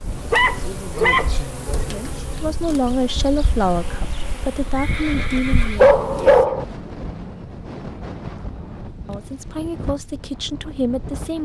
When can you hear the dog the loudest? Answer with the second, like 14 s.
6 s.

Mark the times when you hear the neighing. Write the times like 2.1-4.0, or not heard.
4.8-5.8.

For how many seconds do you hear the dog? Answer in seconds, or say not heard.
3 s.